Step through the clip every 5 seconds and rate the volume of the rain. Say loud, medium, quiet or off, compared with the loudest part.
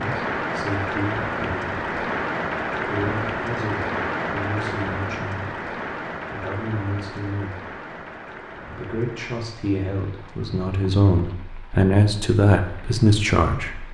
loud, medium, quiet.